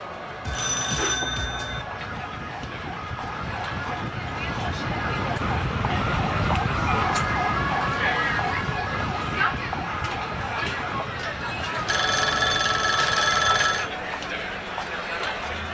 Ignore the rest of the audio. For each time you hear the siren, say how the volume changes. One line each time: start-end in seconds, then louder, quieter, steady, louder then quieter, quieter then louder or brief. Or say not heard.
0.0-15.7 louder then quieter.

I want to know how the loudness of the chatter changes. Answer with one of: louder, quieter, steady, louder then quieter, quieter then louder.
louder.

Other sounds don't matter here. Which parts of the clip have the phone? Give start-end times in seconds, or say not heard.
0.5-1.9, 11.8-13.9.